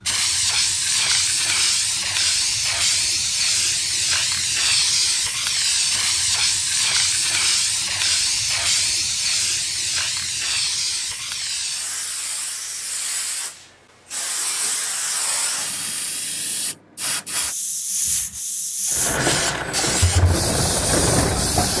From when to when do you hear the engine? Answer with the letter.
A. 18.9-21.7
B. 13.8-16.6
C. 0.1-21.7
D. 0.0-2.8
A.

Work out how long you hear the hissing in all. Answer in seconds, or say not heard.
22 s.